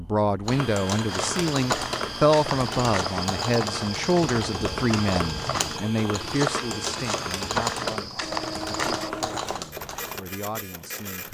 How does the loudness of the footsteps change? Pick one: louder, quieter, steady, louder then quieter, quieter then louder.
steady.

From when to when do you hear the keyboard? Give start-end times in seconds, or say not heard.
0.5-10.2.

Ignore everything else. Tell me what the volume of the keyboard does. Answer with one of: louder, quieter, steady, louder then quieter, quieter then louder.
steady.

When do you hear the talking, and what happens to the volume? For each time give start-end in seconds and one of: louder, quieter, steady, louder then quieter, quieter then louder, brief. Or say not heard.
0.0-11.2 quieter.